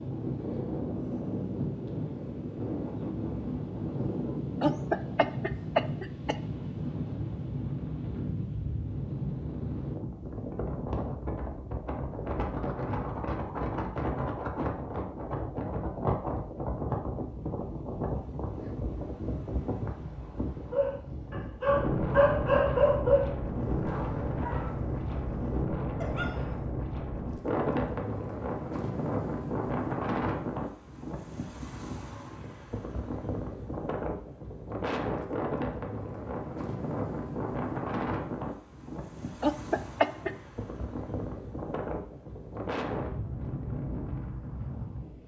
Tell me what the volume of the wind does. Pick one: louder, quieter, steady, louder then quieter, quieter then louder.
steady.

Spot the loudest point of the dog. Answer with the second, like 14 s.
23 s.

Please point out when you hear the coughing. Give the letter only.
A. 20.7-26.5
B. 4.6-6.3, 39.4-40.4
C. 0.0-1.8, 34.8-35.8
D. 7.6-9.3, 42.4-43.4
B.